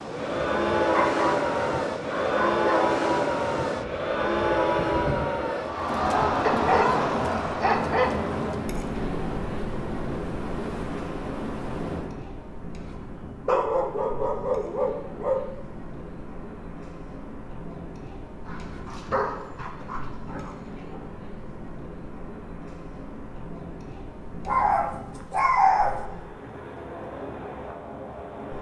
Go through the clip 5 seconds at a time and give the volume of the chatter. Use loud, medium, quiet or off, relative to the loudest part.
loud, loud, quiet, quiet, quiet, quiet.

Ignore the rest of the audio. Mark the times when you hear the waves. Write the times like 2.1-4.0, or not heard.
0.0-28.5.